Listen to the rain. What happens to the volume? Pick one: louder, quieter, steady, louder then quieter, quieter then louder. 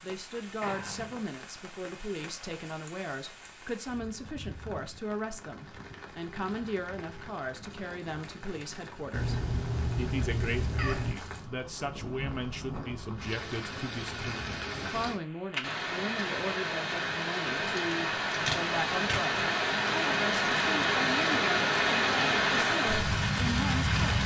louder.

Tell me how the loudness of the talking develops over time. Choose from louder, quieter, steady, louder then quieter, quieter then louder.
steady.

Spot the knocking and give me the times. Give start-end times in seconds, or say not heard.
not heard.